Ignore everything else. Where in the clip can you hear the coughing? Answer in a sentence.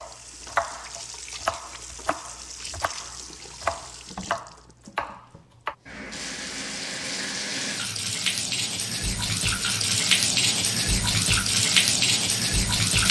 You can't hear the coughing here.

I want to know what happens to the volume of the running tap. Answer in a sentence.
The volume of the running tap goes up.